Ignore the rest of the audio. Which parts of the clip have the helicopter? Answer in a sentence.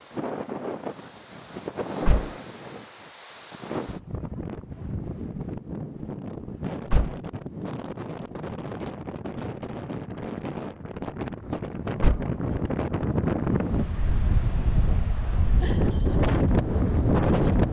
You can't hear the helicopter here.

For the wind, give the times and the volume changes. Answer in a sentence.
The wind can be heard from 0.0 to 17.6 s, getting louder.